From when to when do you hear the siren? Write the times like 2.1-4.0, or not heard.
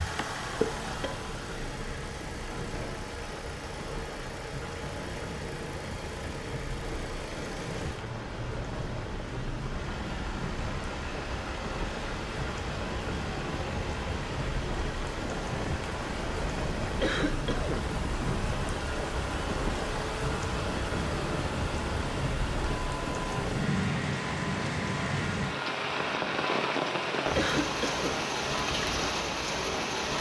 not heard.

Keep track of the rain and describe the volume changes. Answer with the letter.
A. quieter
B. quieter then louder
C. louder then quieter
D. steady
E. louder
E.